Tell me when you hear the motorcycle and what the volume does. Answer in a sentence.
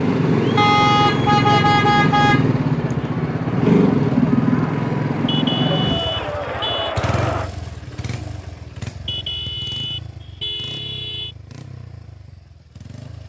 The motorcycle can be heard from 0.0 to 13.2 s, getting quieter.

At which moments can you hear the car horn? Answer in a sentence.
You can hear the car horn from 0.6 to 2.5 s, from 5.2 to 7.0 s and from 9.1 to 11.3 s.